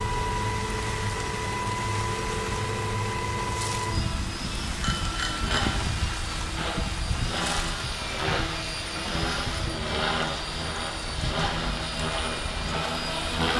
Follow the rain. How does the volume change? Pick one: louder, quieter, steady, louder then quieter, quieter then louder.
steady.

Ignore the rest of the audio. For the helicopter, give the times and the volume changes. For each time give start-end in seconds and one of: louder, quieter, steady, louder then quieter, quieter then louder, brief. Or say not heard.
0.0-13.5 steady.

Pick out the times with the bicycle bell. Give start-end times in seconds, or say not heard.
4.8-5.7.